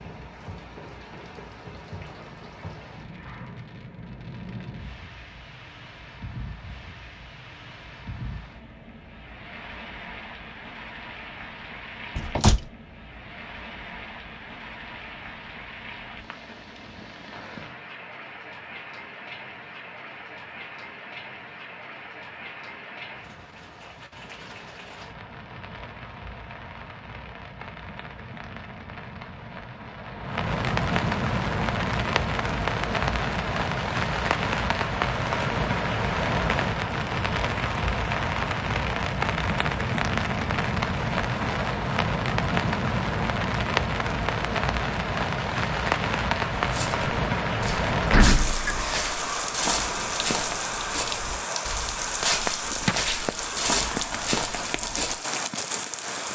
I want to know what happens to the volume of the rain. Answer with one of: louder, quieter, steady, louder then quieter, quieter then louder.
louder.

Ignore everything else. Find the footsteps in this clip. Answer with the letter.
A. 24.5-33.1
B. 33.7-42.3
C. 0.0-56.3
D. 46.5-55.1
D.